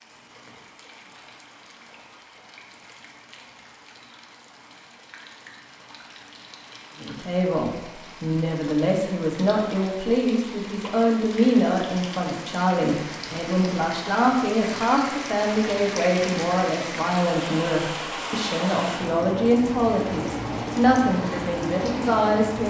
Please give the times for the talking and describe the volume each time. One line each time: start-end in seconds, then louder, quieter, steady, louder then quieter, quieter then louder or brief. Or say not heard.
7.0-22.6 steady.